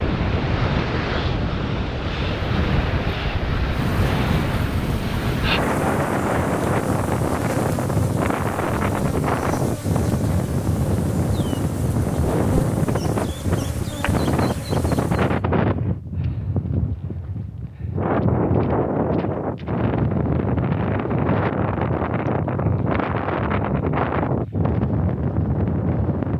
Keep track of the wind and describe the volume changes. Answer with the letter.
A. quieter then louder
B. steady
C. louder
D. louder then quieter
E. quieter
B.